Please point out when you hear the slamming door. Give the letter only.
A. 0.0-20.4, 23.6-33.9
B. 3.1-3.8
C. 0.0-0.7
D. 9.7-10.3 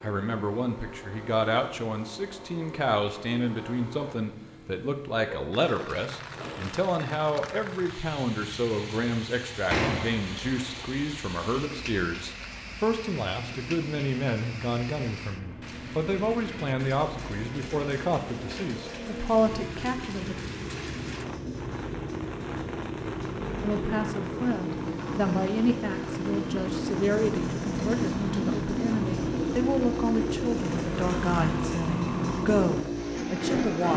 D.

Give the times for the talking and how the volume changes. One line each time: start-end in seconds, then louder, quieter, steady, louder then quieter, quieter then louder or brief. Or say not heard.
0.0-20.4 steady
23.6-33.9 steady.